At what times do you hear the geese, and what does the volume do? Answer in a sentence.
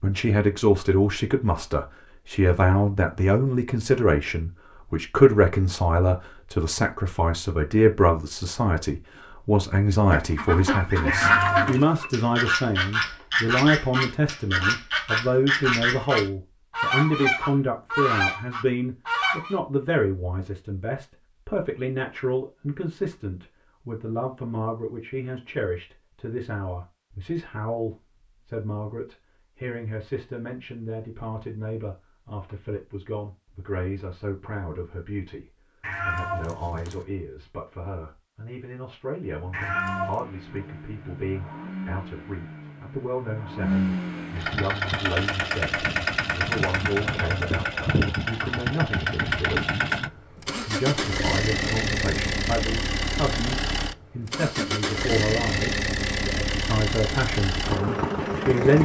The geese can be heard from 10.1 to 19.6 s, at a steady volume.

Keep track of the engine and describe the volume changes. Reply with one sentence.
The loudness of the engine goes up.